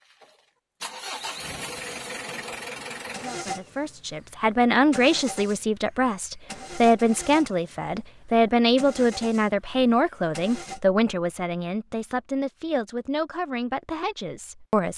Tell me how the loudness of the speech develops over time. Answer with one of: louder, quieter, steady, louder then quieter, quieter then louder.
quieter.